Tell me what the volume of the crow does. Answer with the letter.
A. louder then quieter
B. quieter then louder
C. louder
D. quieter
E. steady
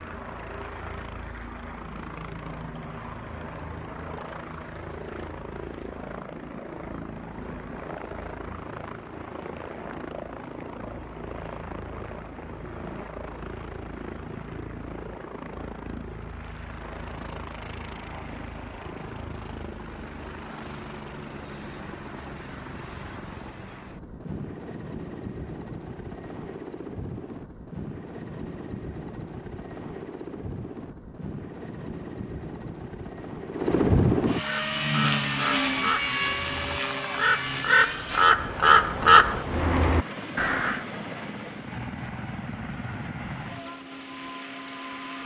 A.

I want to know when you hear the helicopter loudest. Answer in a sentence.
The loudest moment of the helicopter is at 34 seconds.